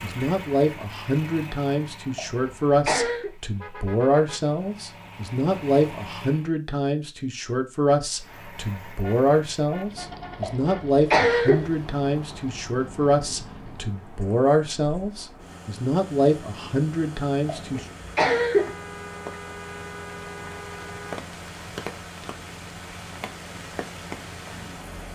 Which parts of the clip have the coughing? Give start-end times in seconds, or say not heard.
2.1-3.3, 10.4-11.7, 17.4-18.8.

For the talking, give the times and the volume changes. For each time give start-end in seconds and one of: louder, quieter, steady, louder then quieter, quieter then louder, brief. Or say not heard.
0.0-17.9 steady.